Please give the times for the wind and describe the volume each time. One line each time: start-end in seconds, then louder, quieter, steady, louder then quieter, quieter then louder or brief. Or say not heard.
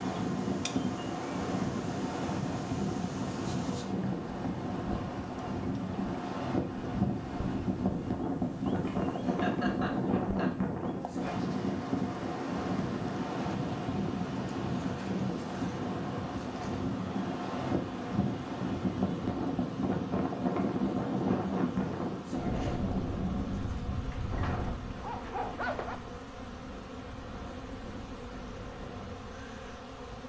0.0-30.2 quieter.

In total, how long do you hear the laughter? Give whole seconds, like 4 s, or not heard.
2 s.